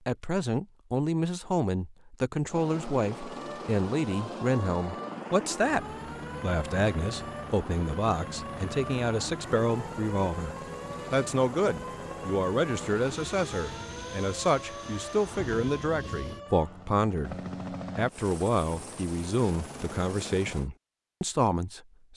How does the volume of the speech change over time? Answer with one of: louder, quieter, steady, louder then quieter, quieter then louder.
steady.